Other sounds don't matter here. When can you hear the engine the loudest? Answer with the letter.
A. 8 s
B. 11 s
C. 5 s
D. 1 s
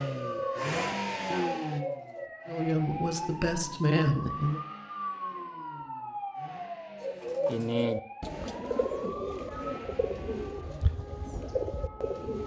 D.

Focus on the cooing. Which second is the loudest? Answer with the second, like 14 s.
8 s.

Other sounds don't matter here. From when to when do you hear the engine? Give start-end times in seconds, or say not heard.
0.0-10.9.